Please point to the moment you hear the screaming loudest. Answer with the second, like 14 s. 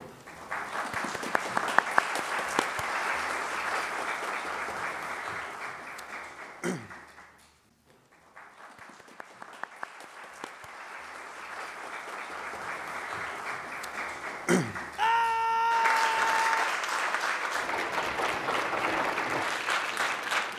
15 s.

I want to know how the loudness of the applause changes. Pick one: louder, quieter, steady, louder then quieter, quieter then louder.
quieter then louder.